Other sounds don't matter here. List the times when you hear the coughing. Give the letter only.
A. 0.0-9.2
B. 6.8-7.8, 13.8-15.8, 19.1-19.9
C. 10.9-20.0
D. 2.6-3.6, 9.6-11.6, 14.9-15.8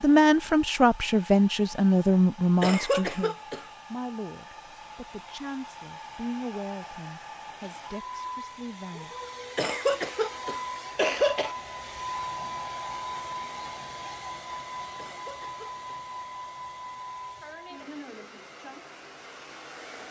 D.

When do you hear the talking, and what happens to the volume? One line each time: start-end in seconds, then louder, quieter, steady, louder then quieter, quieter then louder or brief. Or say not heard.
0.0-9.2 quieter.